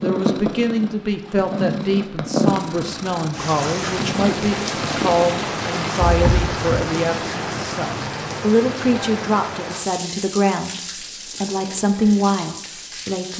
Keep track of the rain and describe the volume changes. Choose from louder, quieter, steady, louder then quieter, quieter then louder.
quieter.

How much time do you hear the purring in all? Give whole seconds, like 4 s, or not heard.
5 s.